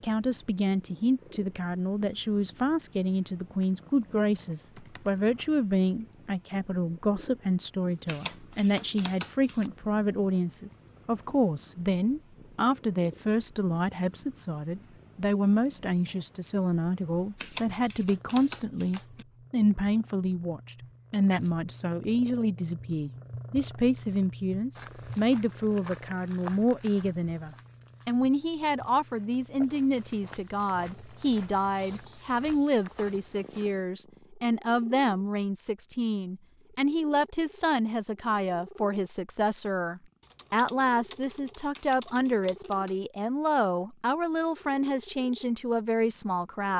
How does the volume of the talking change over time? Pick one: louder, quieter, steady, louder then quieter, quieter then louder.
steady.